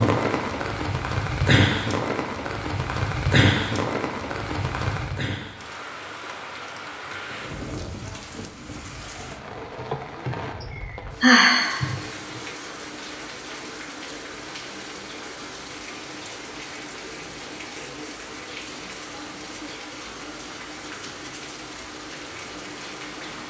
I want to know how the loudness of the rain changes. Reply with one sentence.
The volume of the rain goes down.